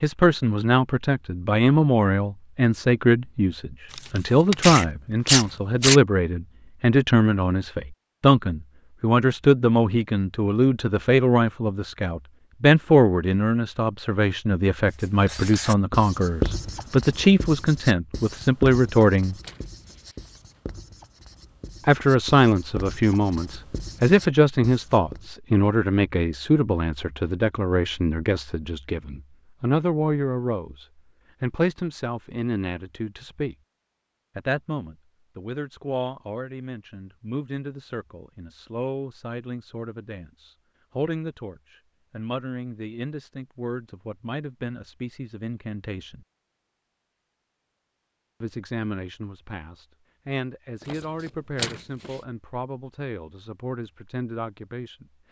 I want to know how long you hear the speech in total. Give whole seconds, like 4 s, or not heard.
50 s.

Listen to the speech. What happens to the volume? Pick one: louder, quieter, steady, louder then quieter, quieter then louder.
quieter.